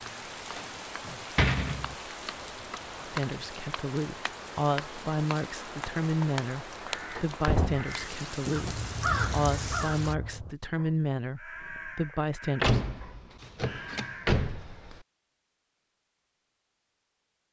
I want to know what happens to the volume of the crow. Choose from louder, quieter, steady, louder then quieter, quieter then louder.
louder then quieter.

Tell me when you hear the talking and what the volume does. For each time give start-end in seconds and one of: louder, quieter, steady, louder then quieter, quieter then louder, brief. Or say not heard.
3.0-12.8 steady.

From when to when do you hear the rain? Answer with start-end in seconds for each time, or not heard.
0.0-10.2.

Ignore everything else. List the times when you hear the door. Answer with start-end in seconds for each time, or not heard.
0.1-1.9, 7.2-8.8, 12.6-15.0.